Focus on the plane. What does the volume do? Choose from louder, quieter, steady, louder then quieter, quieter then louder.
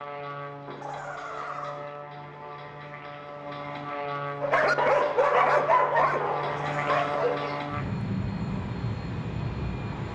louder.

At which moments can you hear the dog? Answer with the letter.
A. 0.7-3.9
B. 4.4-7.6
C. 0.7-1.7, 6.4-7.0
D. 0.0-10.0
B.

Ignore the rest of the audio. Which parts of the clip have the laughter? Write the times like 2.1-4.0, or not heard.
0.7-1.7, 6.4-7.0.